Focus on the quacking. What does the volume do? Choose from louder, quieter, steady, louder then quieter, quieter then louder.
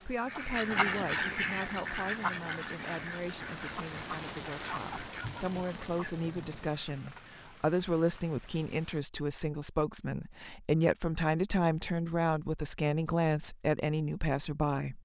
quieter.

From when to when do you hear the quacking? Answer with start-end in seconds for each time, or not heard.
0.2-6.3.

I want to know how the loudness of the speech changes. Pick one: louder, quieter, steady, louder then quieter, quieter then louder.
louder.